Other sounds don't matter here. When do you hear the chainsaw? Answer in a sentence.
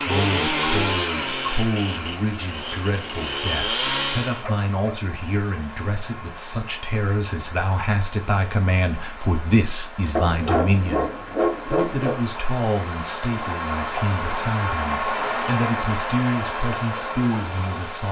The chainsaw can be heard from 0.0 to 4.5 s.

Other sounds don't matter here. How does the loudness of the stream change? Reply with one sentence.
The volume of the stream goes up.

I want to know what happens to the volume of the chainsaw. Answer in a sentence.
The volume of the chainsaw goes down, then up.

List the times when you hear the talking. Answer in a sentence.
The talking can be heard from 0.1 to 18.0 s.